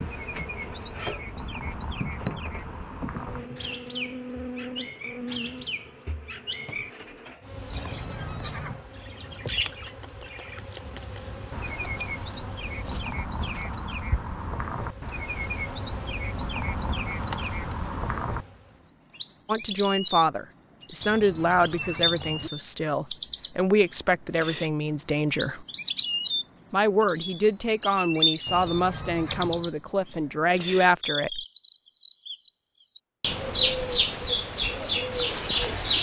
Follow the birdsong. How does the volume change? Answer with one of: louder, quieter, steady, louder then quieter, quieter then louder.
louder.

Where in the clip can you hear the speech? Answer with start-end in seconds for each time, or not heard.
19.4-25.6, 26.7-31.4.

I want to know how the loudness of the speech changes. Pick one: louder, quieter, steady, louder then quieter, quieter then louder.
steady.